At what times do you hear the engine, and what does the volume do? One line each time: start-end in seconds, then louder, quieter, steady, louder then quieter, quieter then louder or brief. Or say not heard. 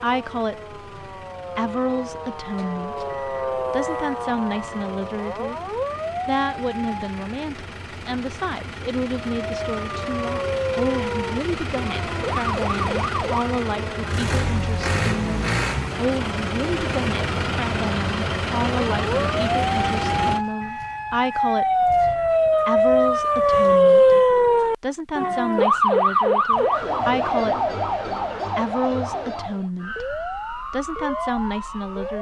0.0-20.4 louder.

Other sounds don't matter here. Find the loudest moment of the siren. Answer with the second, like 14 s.
24 s.